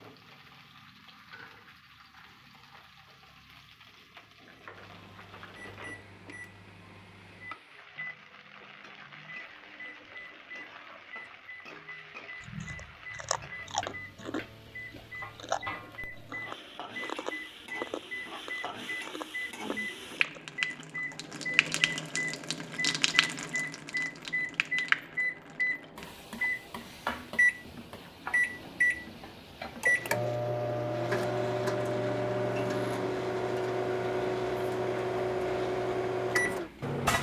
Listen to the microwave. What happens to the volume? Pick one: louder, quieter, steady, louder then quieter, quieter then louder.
louder.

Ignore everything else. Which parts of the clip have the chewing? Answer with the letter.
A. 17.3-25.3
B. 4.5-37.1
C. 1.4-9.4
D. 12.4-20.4
D.